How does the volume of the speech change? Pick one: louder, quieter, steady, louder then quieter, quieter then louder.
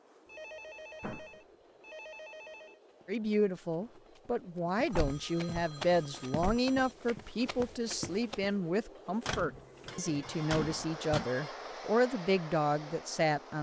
steady.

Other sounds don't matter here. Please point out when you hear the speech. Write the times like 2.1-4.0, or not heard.
3.0-13.5.